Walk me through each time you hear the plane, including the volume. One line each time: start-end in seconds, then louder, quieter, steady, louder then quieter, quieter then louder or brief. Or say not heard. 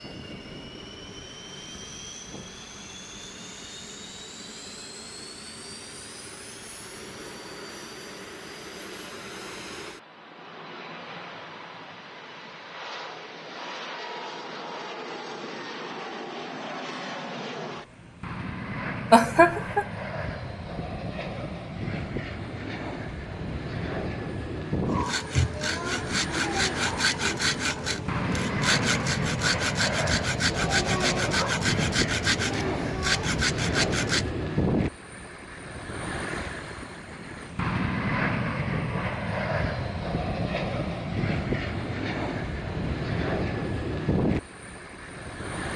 0.0-45.7 louder.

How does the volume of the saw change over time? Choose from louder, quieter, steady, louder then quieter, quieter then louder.
steady.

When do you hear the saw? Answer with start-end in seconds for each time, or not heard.
24.9-34.3.